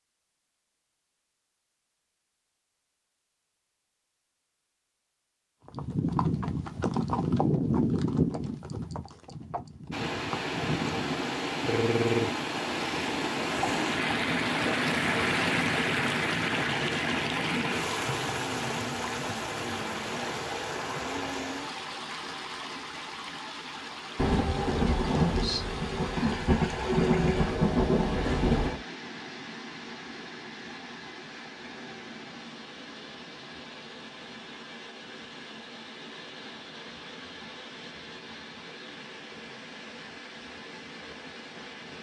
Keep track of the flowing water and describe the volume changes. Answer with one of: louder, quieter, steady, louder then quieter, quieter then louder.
quieter.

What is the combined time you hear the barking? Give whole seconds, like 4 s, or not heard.
not heard.